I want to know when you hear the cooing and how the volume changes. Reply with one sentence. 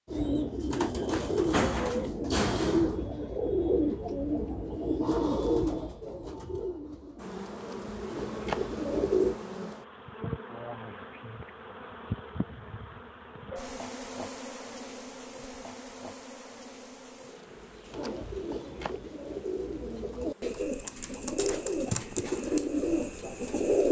You can hear the cooing from 0.1 to 9.3 s, getting quieter; and from 17.9 to 23.8 s, getting louder.